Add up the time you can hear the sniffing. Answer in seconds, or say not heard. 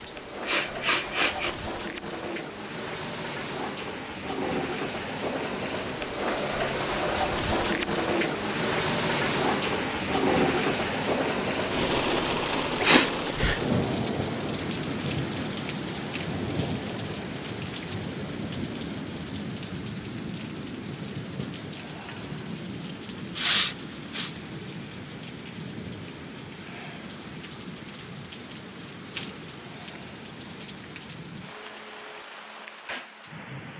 3 s.